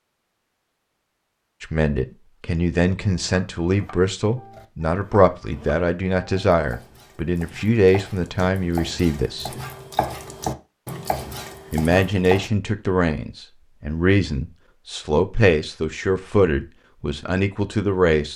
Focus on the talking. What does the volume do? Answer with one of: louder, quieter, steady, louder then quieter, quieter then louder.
steady.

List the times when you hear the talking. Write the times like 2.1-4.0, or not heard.
1.6-9.5, 11.7-18.3.